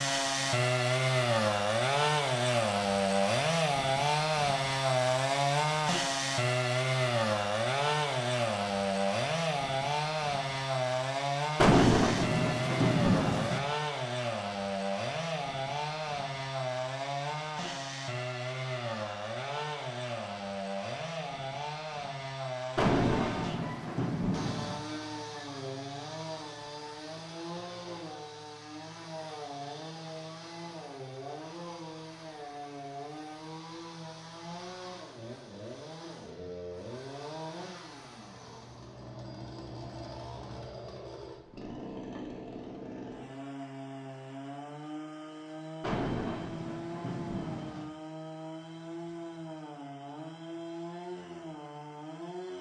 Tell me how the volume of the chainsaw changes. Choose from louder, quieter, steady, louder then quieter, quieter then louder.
quieter.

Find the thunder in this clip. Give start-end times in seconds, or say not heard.
11.6-13.6, 22.8-24.8, 45.8-47.9.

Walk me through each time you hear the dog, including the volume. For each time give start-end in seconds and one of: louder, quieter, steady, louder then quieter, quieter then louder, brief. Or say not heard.
not heard.